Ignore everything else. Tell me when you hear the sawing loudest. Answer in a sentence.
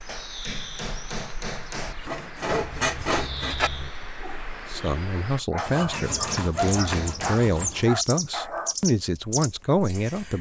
The loudest moment of the sawing is at 3 seconds.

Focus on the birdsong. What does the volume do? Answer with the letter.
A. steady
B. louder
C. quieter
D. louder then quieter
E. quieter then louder
B.